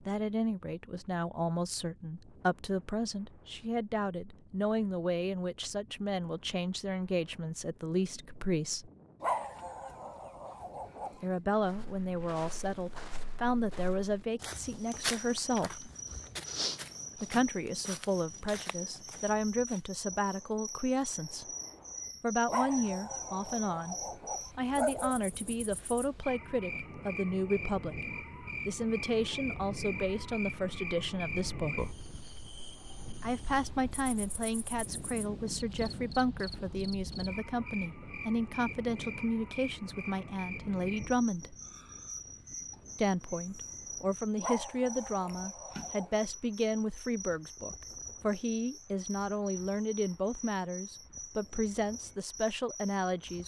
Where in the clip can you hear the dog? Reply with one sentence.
The dog can be heard from 9.2 to 11.2 s, from 22.4 to 25.2 s and from 44.4 to 46.2 s.